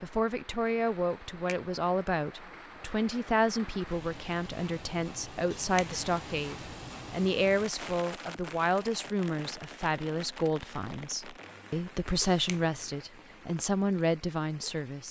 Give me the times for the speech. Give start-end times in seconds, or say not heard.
0.0-15.0.